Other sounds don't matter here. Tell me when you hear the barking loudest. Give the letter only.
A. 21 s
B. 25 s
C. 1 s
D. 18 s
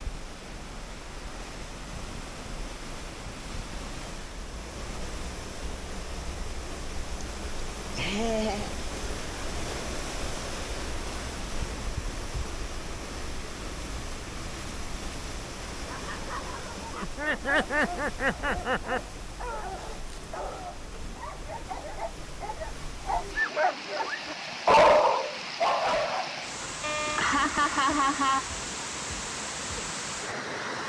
B.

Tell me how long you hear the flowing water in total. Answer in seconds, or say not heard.
31 s.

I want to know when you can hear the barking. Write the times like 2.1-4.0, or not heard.
15.8-27.3.